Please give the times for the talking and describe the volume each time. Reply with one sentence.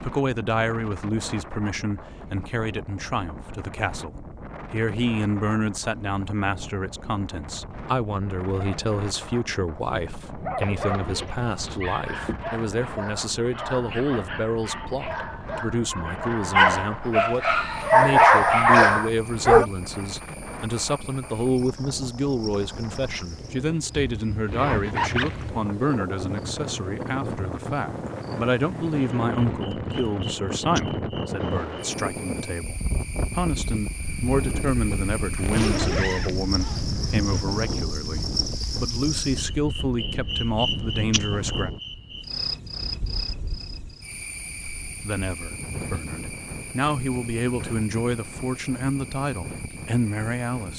The talking can be heard from 0.0 to 41.7 s, at a steady volume; and from 44.9 to 50.7 s, getting louder.